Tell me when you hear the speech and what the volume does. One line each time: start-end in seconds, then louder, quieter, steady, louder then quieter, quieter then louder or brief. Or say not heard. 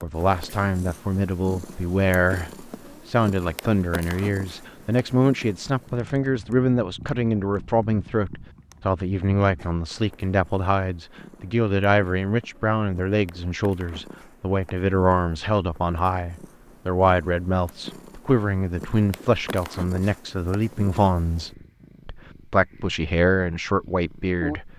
0.0-24.7 steady.